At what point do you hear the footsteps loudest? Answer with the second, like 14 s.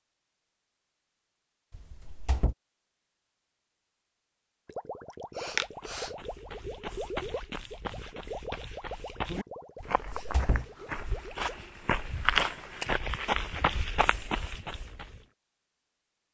12 s.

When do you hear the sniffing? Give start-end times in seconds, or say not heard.
5.3-6.2.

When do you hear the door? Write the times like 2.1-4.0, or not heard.
1.7-2.5, 9.8-10.7.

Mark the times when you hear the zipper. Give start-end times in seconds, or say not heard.
not heard.